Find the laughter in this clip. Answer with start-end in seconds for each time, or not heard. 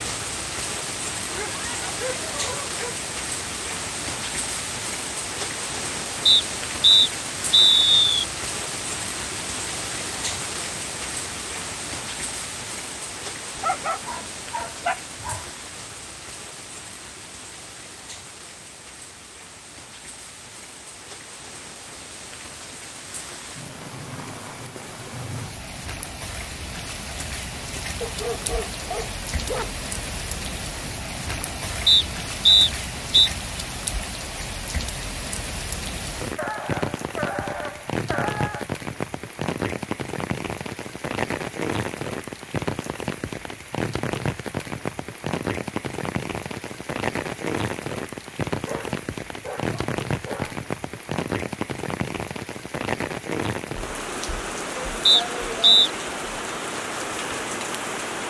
not heard.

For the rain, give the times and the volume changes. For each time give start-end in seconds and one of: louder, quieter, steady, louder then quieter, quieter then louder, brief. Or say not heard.
0.0-58.2 quieter then louder.